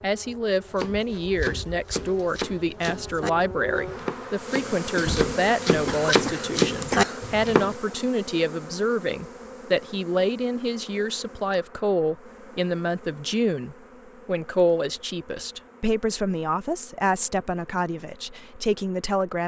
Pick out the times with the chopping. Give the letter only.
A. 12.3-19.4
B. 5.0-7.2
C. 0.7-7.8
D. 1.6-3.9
C.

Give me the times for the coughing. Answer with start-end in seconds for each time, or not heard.
5.0-7.2.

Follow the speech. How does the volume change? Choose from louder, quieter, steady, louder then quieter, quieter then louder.
steady.